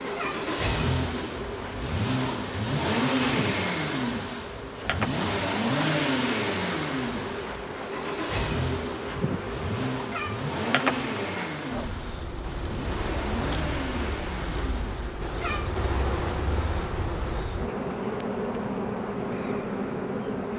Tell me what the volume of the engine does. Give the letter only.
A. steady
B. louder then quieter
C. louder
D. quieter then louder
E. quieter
E.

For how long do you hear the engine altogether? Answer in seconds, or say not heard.
15 s.